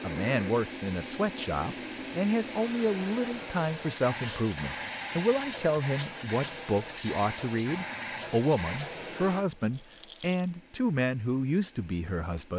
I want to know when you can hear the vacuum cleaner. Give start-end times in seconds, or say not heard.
0.0-12.5.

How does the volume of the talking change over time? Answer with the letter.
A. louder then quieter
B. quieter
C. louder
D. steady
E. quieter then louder
D.